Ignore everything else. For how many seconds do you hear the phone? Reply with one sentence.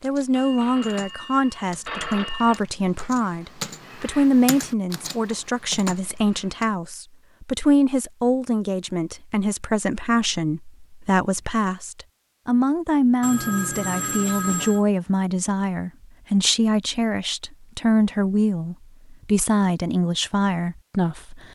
The phone can be heard for 4 seconds in total.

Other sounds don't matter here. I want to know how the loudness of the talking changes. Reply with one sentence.
The loudness of the talking stays about the same.